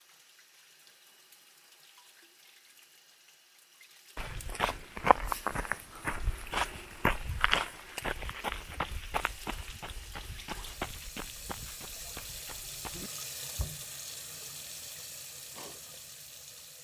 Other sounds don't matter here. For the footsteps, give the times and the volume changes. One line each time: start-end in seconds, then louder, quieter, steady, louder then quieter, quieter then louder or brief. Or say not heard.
4.2-13.1 quieter.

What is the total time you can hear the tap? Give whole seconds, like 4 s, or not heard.
17 s.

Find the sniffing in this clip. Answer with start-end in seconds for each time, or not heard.
not heard.